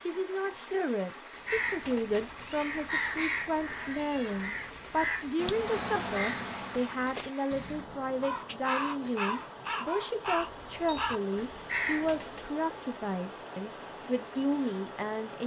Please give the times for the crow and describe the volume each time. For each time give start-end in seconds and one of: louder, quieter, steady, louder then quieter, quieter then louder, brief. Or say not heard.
1.4-12.5 steady.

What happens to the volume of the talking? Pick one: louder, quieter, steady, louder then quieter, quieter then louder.
steady.